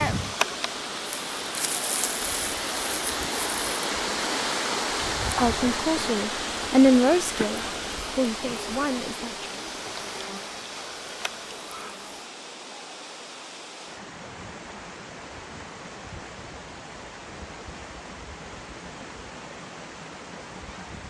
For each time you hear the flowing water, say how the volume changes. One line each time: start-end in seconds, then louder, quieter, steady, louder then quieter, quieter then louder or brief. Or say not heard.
0.0-21.0 quieter.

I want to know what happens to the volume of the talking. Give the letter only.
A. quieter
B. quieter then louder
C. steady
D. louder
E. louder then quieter
E.